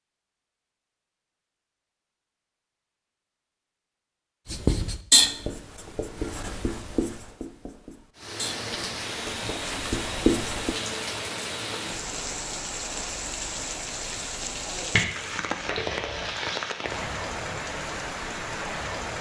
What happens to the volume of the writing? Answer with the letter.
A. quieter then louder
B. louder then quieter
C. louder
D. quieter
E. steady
A.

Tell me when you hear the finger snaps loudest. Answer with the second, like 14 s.
15 s.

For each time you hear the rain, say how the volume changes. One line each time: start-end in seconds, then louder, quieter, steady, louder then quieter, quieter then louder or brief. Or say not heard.
8.2-19.1 steady.